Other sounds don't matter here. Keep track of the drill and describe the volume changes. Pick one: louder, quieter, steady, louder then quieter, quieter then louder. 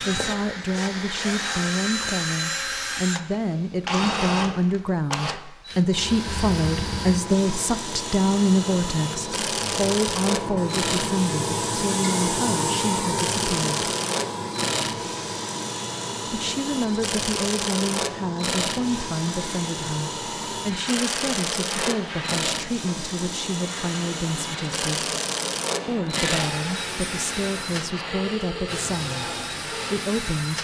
steady.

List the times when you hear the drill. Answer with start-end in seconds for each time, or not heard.
0.0-30.5.